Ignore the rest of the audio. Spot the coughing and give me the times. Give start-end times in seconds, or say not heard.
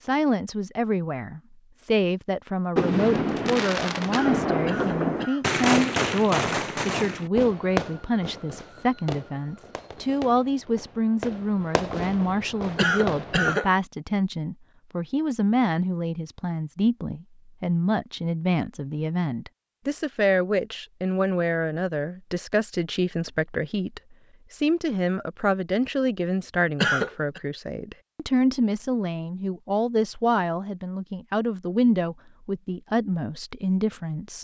4.1-5.5, 12.8-13.7, 26.8-27.4.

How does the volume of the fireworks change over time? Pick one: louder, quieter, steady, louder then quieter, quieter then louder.
quieter then louder.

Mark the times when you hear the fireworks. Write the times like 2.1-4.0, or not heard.
2.8-13.6.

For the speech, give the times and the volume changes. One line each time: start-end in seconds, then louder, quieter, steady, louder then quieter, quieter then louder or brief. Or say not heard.
0.0-34.3 steady.